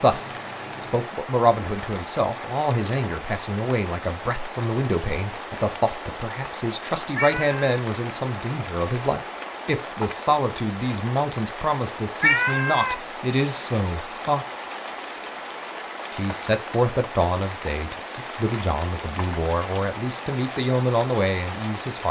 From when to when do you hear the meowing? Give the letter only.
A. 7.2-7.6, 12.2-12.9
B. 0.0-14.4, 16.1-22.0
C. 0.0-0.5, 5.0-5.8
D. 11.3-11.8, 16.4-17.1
A.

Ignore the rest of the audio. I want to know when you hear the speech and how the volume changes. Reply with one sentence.
You can hear the speech from 0.0 to 14.4 s, at a steady volume; and from 16.1 to 22.0 s, getting quieter then louder.